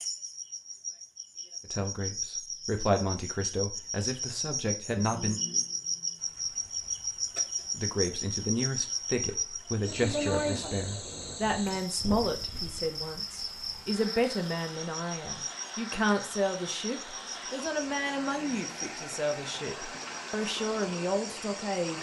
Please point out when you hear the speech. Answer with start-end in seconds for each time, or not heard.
1.7-5.4, 7.7-21.9.